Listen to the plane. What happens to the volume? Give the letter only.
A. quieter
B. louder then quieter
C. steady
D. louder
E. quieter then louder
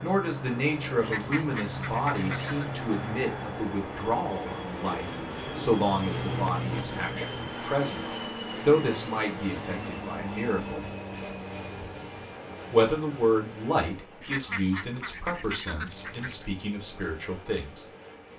A.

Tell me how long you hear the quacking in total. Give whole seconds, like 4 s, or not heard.
4 s.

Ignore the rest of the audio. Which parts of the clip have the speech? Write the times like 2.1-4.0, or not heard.
0.0-10.8, 12.7-17.9.